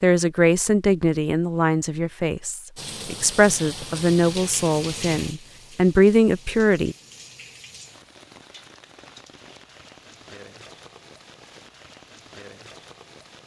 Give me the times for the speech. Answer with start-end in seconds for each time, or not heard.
0.0-7.0.